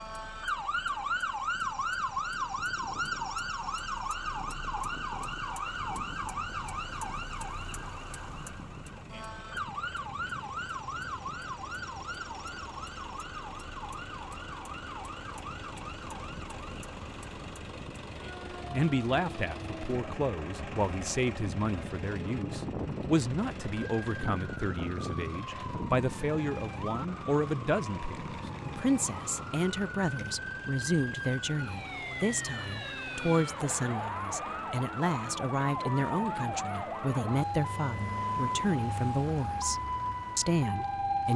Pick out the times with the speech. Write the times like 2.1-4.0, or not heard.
18.6-41.3.